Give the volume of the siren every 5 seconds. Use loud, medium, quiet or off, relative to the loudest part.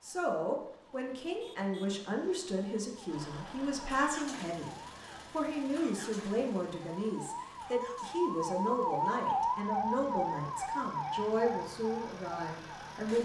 quiet, loud, loud.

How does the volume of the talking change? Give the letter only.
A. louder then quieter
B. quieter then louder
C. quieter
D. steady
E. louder
D.